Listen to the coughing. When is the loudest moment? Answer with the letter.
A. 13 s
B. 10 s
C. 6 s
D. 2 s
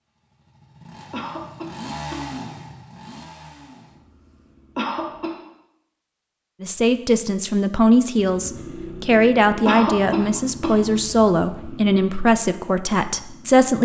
B.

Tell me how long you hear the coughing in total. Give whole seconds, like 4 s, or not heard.
3 s.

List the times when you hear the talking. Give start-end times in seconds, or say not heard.
6.6-13.8.